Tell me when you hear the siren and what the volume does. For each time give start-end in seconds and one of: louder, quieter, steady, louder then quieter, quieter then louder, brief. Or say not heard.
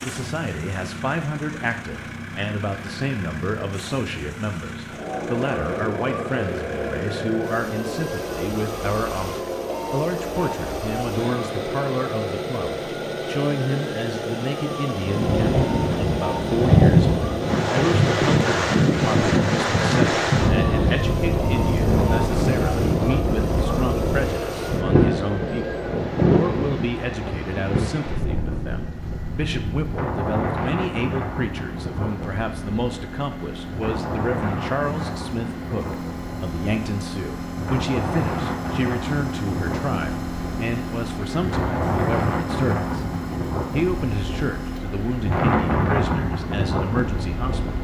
4.8-26.2 steady.